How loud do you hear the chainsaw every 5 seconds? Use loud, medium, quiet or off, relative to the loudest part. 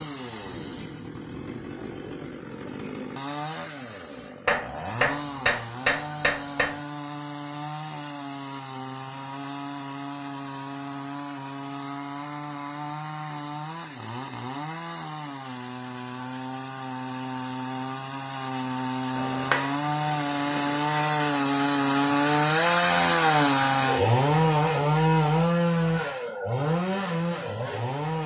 quiet, quiet, quiet, medium, loud, loud.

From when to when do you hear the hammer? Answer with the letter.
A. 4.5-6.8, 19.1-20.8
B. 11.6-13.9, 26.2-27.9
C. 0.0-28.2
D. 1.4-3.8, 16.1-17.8
A.